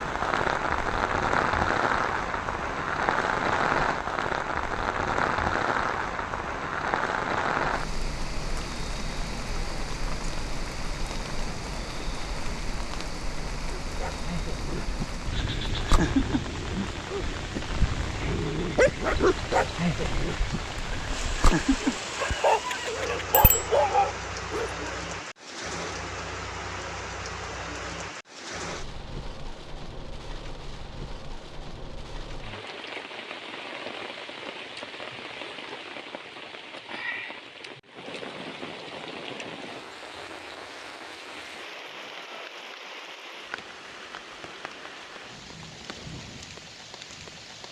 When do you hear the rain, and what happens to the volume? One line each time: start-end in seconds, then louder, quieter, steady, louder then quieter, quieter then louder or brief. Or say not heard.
0.0-47.6 quieter.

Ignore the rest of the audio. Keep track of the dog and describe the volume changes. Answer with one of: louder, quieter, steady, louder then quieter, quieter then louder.
louder.